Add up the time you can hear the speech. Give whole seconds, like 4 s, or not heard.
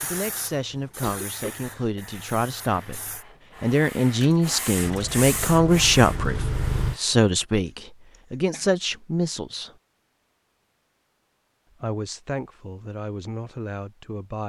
12 s.